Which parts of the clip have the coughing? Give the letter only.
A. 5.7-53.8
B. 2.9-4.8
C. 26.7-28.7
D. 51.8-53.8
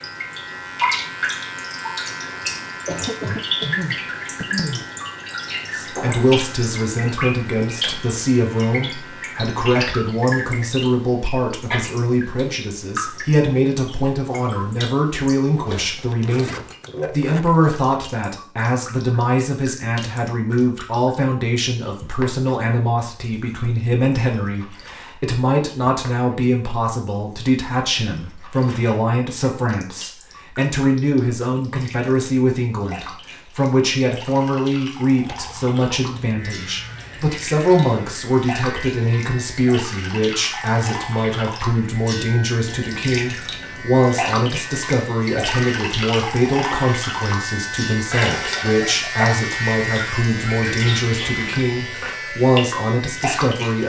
B.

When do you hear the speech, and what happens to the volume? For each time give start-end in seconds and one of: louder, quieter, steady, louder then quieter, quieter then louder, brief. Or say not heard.
5.7-53.8 steady.